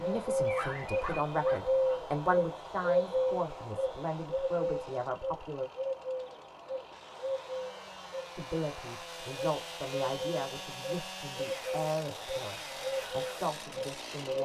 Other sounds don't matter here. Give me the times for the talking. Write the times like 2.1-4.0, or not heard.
0.0-5.7, 8.3-14.3.